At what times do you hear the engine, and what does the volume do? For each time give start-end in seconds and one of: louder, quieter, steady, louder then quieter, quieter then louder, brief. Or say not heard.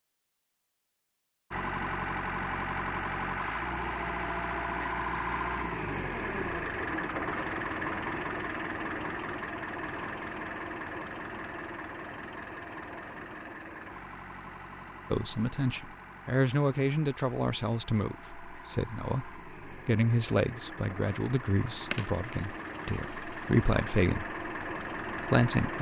1.5-25.7 quieter then louder.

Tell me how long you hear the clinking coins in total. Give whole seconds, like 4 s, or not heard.
2 s.